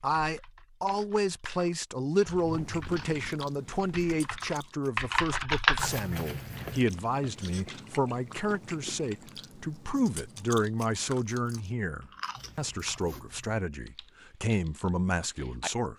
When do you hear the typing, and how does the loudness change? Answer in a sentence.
You can hear the typing from 0.1 to 7.9 s, getting louder then quieter; and briefly from 13.8 to 15.7 s.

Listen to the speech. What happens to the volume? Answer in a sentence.
The loudness of the speech stays about the same.